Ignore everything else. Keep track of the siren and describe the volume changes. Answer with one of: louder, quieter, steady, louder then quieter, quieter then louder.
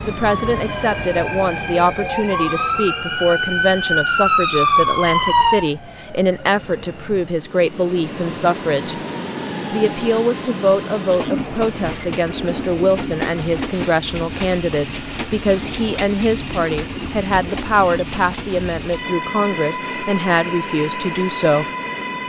louder.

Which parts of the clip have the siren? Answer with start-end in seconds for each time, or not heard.
0.0-5.7.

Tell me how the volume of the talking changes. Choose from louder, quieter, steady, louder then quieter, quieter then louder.
steady.